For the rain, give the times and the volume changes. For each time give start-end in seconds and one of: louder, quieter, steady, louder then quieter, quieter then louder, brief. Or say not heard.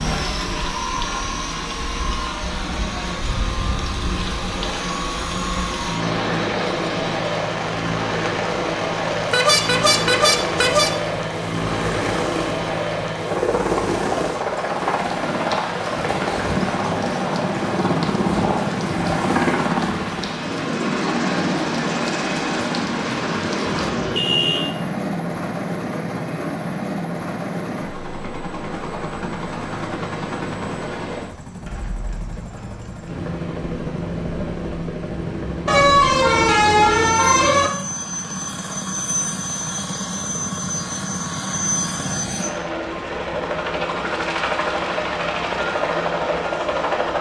0.0-23.9 steady.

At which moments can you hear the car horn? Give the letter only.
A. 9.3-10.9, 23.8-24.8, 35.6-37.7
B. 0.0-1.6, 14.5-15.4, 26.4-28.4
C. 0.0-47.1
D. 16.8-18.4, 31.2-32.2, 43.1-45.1
A.